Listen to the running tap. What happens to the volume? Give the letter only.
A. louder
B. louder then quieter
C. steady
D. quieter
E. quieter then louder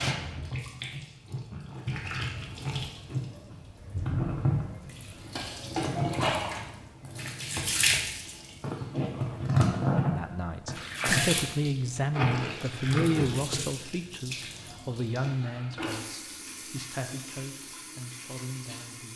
B.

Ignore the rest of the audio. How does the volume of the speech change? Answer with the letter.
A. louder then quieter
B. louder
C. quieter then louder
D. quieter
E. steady
D.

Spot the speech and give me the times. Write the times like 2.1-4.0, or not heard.
10.1-19.1.